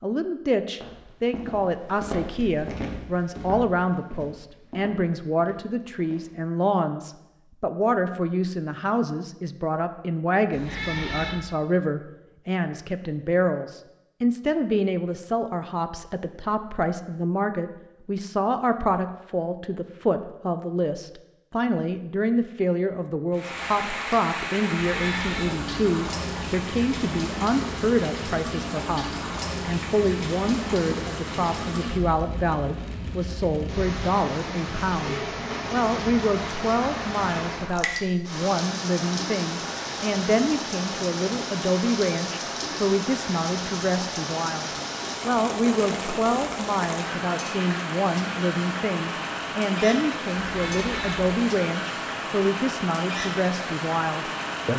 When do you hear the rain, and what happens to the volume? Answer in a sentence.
The rain can be heard from 23.3 to 54.7 s, at a steady volume.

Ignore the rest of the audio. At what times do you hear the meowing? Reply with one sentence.
The meowing can be heard from 10.5 to 11.3 s, from 24.8 to 25.6 s and from 50.5 to 51.2 s.